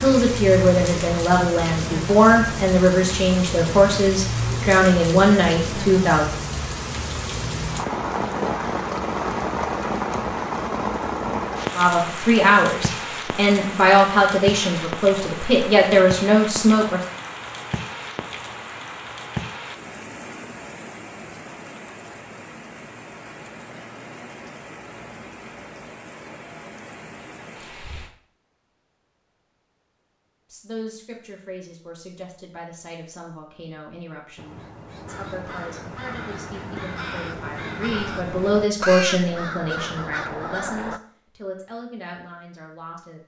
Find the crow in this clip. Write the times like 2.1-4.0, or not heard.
34.4-41.0.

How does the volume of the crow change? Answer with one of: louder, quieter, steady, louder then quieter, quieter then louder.
louder.